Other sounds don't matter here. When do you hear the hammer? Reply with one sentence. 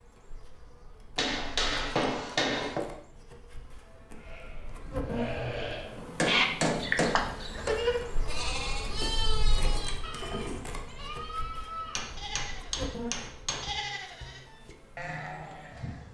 You can hear the hammer from 1.1 to 2.9 s, from 6.0 to 7.8 s and from 11.9 to 13.7 s.